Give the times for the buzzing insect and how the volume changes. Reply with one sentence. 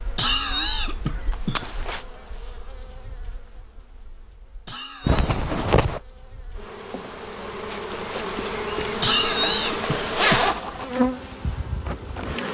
You can hear the buzzing insect from 0.0 to 12.5 s, getting quieter then louder.